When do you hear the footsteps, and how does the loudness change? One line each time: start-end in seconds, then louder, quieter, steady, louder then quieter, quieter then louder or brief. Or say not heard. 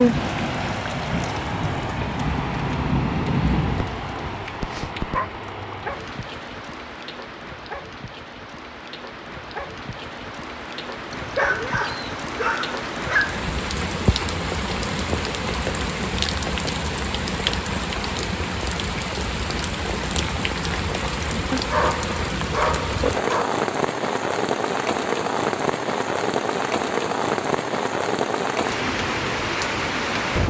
not heard.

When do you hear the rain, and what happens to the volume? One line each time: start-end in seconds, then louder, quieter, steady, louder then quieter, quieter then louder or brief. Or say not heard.
0.0-30.4 quieter then louder.